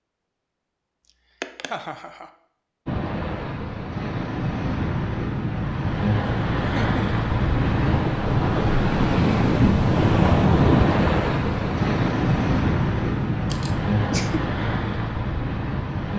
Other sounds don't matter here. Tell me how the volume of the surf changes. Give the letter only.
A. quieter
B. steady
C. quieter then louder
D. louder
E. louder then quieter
E.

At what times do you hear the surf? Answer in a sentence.
The surf can be heard from 2.9 to 16.1 s.